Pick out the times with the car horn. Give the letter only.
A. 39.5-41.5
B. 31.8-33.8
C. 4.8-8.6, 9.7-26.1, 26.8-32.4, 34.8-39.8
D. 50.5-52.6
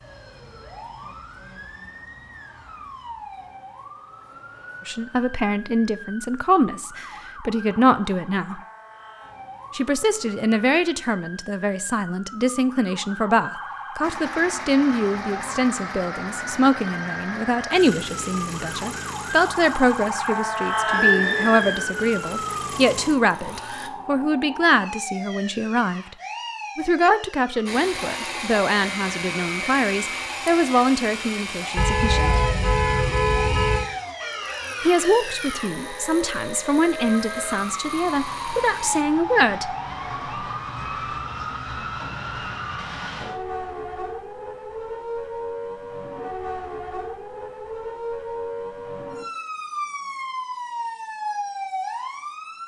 B.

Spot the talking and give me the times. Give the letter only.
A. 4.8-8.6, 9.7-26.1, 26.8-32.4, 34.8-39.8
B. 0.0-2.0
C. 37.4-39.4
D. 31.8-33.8
A.